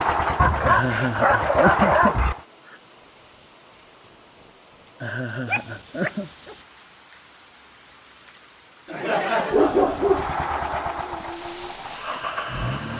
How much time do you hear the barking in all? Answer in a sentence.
The barking can be heard for 4 seconds in total.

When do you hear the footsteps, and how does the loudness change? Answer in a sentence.
You can't hear the footsteps here.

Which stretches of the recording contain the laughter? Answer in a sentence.
You can hear the laughter from 0.6 to 2.3 s, from 5.0 to 6.3 s and from 8.8 to 10.1 s.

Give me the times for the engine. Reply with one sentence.
You can hear the engine from 0.0 to 2.5 s and from 9.8 to 12.9 s.